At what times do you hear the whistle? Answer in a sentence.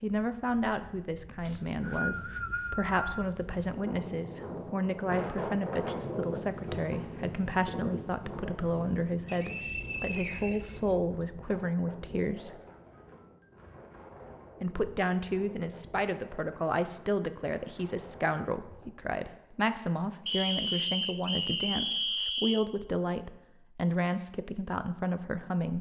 You can hear the whistle from 1.4 to 3.4 s, from 9.2 to 11.2 s and from 20.2 to 22.6 s.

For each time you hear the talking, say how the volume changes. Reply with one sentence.
The talking can be heard from 0.0 to 12.6 s, at a steady volume; and from 14.6 to 25.7 s, at a steady volume.